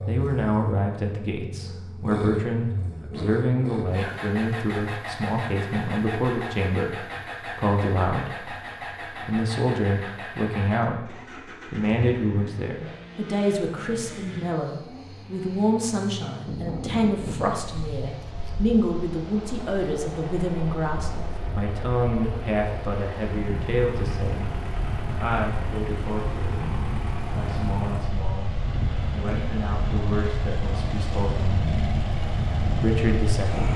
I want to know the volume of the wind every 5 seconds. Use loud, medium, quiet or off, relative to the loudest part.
off, off, off, medium, medium, loud, loud.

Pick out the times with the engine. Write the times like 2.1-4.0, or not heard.
0.0-33.7.